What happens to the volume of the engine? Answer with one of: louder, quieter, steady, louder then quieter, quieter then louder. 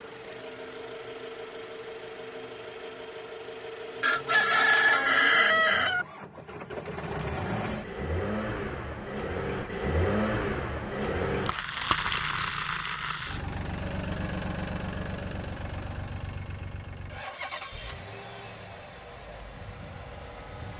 louder then quieter.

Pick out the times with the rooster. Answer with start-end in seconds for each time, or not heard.
4.0-6.0.